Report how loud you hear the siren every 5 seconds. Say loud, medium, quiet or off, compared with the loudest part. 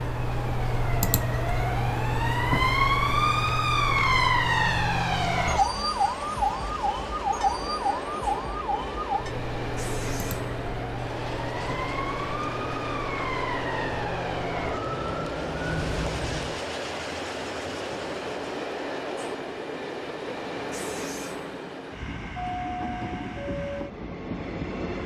loud, loud, medium, medium, off.